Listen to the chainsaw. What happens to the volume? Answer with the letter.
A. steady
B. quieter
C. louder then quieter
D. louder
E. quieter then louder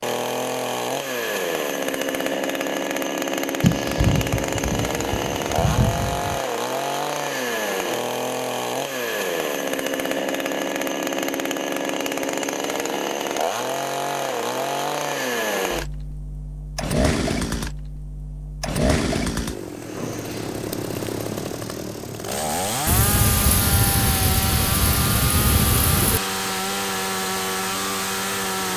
A.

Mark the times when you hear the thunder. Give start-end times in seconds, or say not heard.
3.6-6.4, 22.9-26.2.